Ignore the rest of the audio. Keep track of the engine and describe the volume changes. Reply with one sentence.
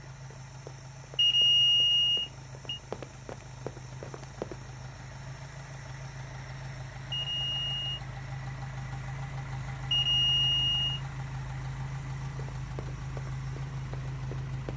The loudness of the engine goes up.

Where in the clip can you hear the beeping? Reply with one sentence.
You can hear the beeping from 1.1 to 2.8 s, from 7.1 to 8.0 s and from 9.9 to 11.0 s.